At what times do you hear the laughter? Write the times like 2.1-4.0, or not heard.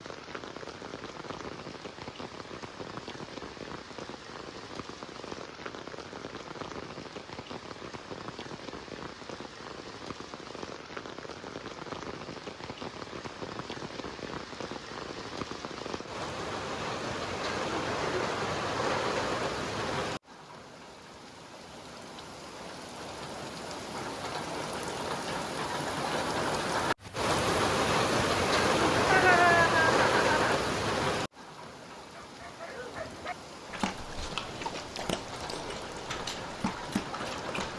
29.1-30.6.